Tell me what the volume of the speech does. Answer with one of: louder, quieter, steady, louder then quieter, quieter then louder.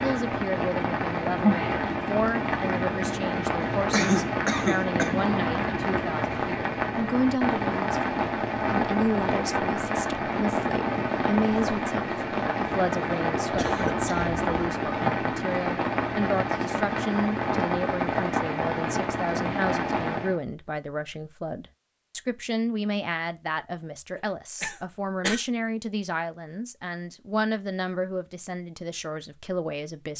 steady.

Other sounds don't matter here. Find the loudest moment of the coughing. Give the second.
4 s.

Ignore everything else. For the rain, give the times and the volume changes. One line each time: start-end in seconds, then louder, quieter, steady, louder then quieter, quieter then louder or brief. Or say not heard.
0.0-20.4 steady.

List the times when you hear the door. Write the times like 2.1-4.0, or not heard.
5.2-5.8.